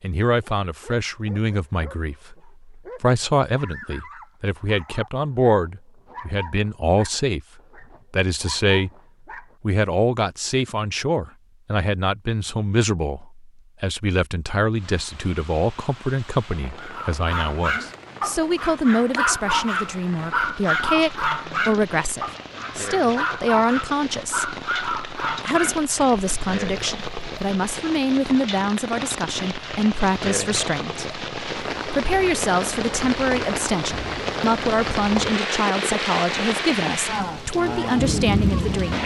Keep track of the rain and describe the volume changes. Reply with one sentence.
The loudness of the rain goes up.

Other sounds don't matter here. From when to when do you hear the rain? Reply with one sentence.
The rain can be heard from 14.8 to 39.0 s.